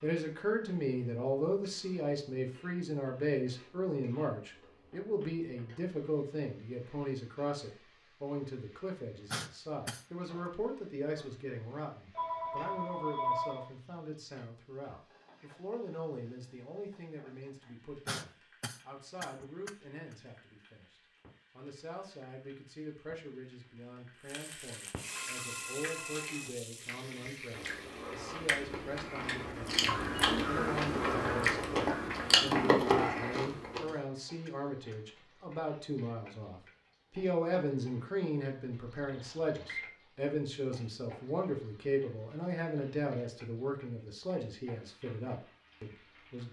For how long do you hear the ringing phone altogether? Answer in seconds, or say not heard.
4 s.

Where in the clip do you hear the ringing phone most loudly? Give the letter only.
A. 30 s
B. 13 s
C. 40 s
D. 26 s
B.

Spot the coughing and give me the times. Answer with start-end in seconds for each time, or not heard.
9.3-10.1, 18.1-20.1, 33.3-35.4.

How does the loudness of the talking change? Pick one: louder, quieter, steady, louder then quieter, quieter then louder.
quieter then louder.